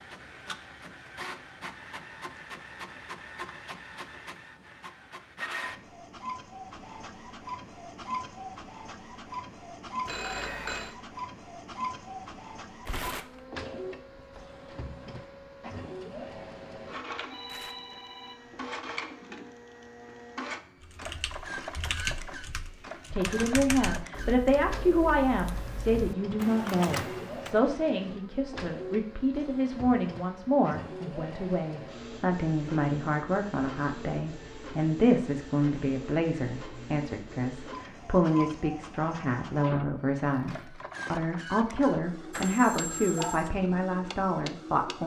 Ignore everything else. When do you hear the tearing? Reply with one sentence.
You can hear the tearing from 12.8 to 13.4 s, from 17.4 to 17.9 s and from 40.2 to 40.6 s.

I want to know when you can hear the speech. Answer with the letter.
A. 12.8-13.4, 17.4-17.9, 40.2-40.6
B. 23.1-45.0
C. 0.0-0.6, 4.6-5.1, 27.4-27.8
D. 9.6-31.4
B.